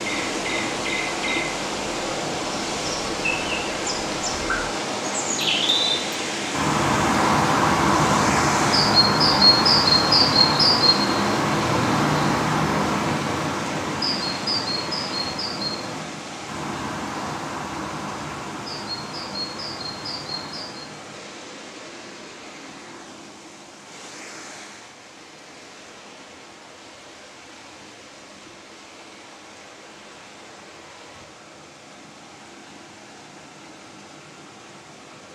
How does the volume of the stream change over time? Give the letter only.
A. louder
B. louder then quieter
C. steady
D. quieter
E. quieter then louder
D.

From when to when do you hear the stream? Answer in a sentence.
You can hear the stream from 0.0 to 35.3 s.